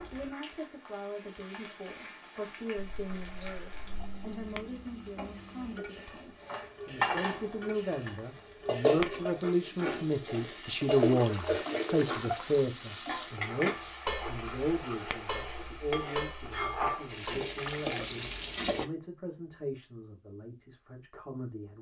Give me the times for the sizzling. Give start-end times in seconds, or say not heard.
0.0-18.9.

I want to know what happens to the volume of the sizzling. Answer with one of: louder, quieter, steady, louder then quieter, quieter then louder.
louder.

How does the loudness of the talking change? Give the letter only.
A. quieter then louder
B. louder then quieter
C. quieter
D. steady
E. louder
B.